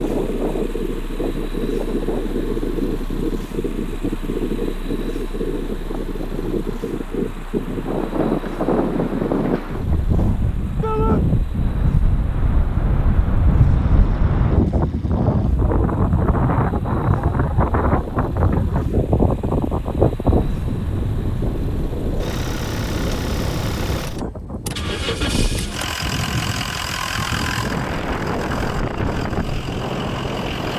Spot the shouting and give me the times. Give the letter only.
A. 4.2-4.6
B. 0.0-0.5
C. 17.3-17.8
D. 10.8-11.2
D.